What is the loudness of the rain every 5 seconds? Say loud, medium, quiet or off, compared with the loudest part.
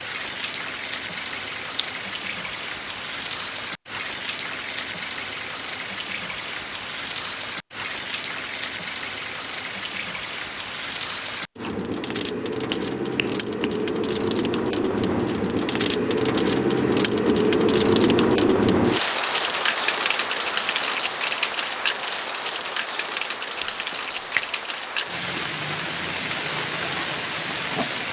medium, medium, medium, loud, medium, medium.